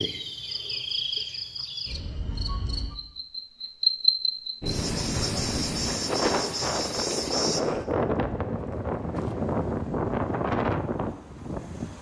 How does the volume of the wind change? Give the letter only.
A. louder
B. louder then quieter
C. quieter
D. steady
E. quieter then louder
D.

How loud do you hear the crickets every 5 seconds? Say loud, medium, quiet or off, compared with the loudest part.
loud, loud, off.